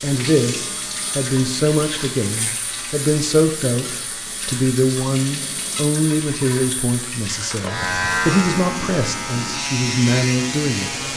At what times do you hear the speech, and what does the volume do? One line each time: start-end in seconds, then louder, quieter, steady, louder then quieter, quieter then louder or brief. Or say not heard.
0.0-10.9 steady.